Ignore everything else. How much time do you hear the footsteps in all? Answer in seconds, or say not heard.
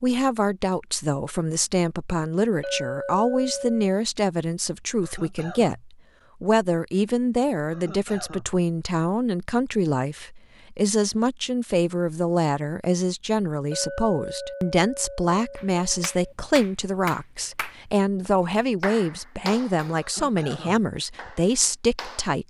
not heard.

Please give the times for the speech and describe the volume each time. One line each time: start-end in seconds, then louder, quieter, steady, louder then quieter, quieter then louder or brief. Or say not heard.
0.0-22.4 steady.